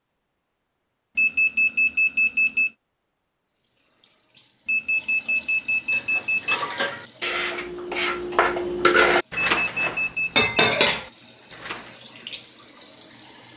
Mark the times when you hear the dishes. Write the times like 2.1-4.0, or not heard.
5.9-11.9.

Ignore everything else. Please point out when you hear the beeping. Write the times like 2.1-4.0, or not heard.
1.1-2.7, 4.7-6.5, 9.6-10.6.